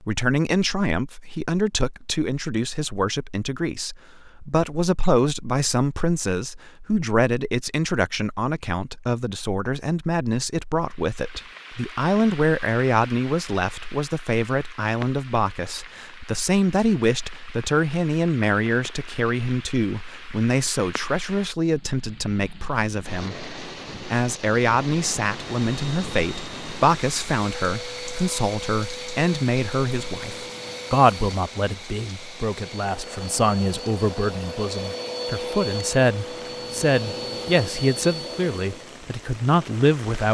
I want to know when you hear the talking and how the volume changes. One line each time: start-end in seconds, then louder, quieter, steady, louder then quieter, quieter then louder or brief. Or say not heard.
0.0-40.3 steady.